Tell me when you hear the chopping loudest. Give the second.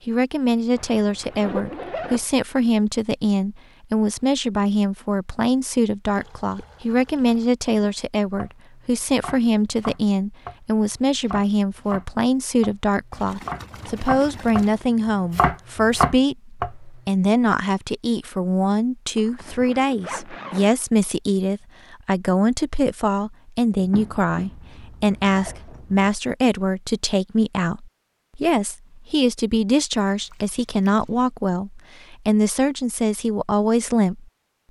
16 s.